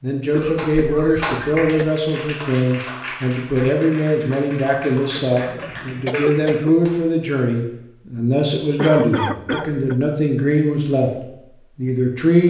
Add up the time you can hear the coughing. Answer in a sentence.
You can hear the coughing for 4 seconds altogether.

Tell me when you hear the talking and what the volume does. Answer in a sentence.
The talking can be heard from 0.0 to 11.1 s, at a steady volume; and briefly from 11.8 to 12.4 s.